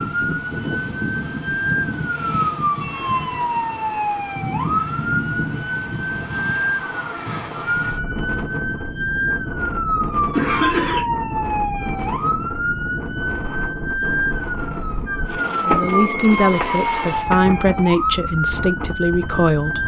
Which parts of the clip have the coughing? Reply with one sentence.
You can hear the coughing from 10.3 to 11.1 s.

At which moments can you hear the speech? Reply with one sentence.
You can hear the speech from 15.6 to 19.8 s.